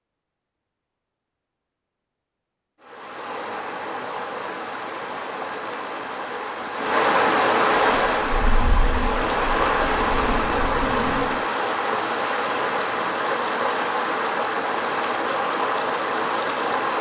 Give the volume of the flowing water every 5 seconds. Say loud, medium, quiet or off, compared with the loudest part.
medium, loud, loud, loud.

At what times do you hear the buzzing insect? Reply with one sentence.
The buzzing insect can be heard from 8.0 to 11.4 s.